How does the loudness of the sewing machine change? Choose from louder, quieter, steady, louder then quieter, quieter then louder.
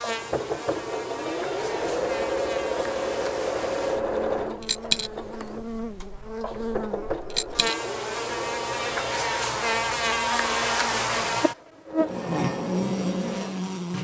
quieter.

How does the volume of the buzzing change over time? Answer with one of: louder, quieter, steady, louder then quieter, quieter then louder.
louder.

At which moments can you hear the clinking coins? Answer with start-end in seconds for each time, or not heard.
4.6-5.1, 7.3-7.8.